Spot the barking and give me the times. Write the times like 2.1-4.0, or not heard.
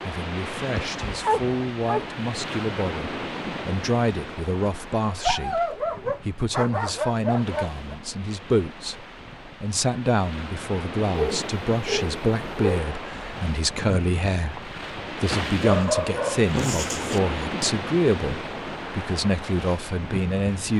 0.8-2.1, 5.2-8.0, 11.1-12.8, 15.6-17.2.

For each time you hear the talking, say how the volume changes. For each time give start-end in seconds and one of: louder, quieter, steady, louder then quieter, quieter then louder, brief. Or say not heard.
0.0-20.7 steady.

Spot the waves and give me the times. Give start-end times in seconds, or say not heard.
0.0-20.7.